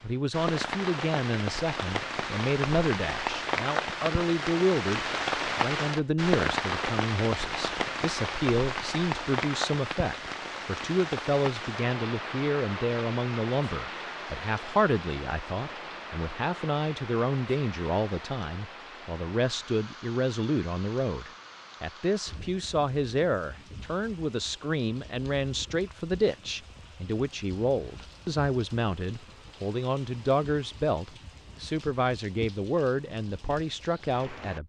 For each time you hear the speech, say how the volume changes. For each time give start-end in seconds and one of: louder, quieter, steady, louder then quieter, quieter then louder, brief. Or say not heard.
0.0-34.6 steady.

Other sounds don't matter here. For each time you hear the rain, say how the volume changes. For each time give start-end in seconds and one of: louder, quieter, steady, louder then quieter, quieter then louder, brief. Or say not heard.
0.0-34.6 quieter.